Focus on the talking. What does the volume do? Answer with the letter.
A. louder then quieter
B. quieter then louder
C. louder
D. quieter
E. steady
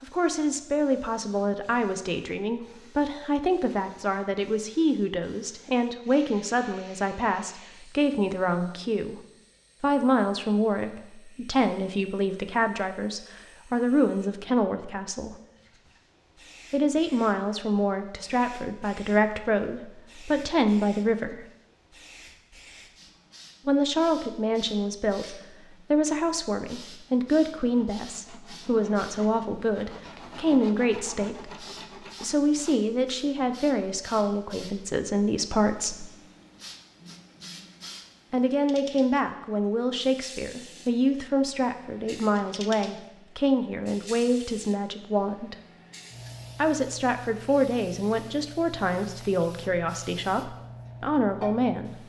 E.